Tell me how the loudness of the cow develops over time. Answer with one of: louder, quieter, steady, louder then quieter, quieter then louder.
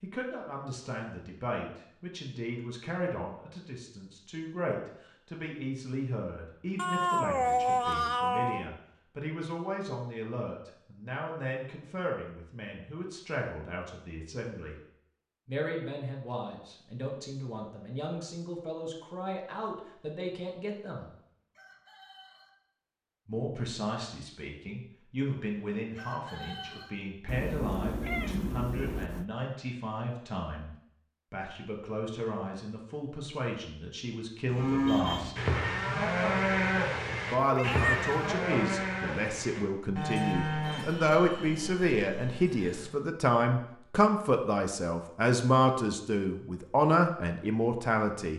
quieter.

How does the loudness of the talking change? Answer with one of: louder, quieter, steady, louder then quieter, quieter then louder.
louder.